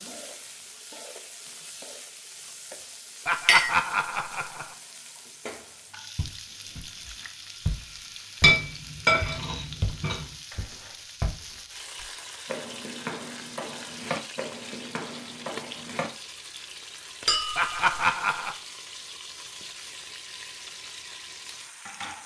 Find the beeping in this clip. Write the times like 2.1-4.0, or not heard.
not heard.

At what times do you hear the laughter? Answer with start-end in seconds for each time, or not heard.
3.2-4.7, 17.6-18.6.